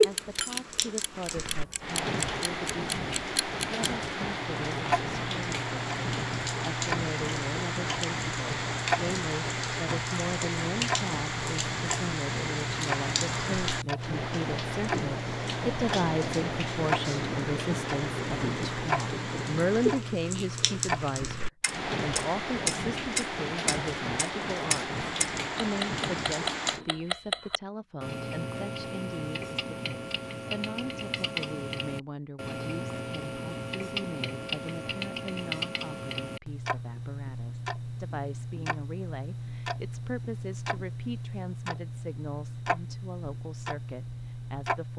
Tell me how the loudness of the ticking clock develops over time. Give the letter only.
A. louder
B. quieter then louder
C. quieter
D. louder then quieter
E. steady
E.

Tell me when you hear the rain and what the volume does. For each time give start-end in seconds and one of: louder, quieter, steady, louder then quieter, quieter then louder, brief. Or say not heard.
0.0-26.9 steady.